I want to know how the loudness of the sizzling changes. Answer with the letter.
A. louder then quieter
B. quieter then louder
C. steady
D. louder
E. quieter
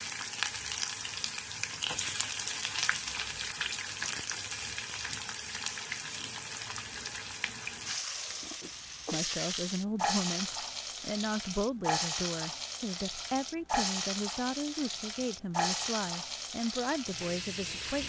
C.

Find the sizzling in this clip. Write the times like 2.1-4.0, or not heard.
0.0-18.0.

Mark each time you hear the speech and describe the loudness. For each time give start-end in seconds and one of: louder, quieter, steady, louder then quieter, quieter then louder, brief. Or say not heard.
9.1-18.0 steady.